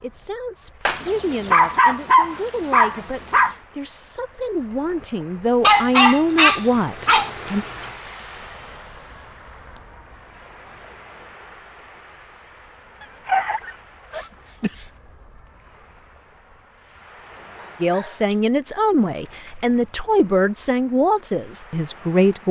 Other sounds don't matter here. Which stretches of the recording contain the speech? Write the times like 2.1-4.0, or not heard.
0.0-7.7, 17.8-22.4.